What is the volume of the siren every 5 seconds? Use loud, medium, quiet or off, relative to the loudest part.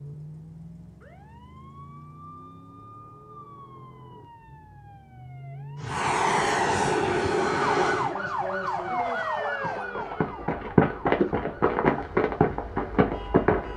quiet, loud, quiet.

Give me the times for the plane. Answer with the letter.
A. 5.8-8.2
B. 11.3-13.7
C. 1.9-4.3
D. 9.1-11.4
A.